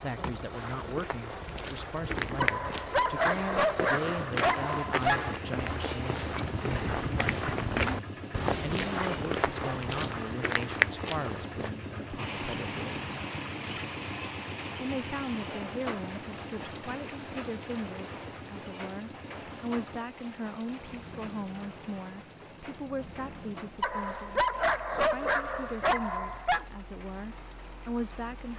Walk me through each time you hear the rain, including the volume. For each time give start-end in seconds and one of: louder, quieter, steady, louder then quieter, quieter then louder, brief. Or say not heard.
12.2-28.5 quieter.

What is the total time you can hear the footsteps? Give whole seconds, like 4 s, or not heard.
11 s.